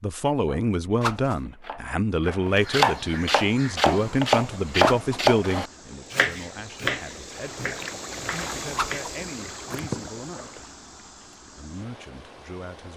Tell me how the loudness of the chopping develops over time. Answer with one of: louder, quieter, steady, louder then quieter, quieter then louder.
louder then quieter.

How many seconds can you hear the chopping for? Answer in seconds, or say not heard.
10 s.